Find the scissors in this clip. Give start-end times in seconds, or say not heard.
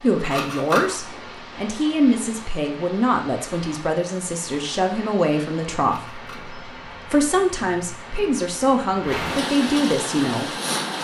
0.2-0.9, 5.8-6.5.